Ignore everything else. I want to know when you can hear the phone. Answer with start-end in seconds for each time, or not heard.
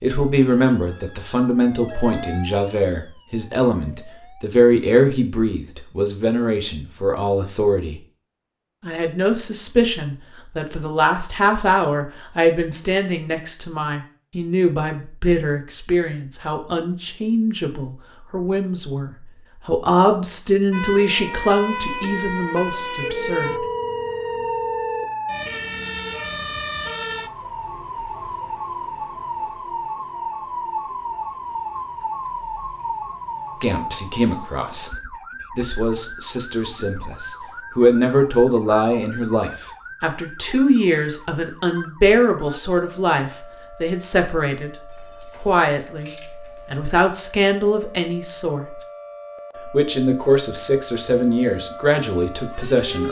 0.8-2.5, 23.0-25.1, 44.9-46.8.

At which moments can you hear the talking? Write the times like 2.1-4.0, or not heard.
0.0-8.0, 8.8-23.6, 33.6-34.9, 35.5-48.8, 49.6-53.0.